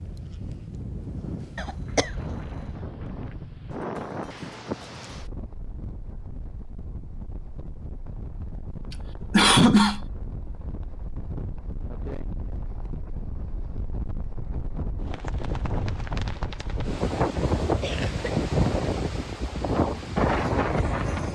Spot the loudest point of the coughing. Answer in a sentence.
The loudest moment of the coughing is at 10 seconds.